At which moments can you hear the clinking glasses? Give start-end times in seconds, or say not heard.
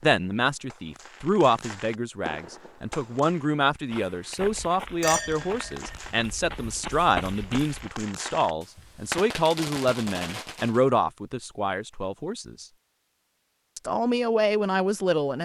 5.0-6.0.